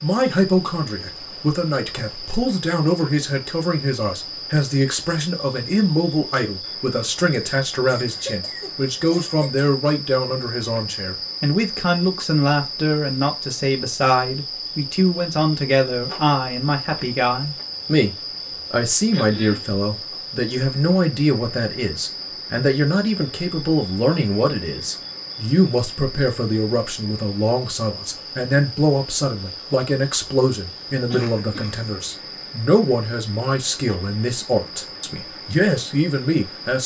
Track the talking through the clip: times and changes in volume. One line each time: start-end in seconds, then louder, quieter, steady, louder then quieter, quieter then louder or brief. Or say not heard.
0.0-36.8 steady.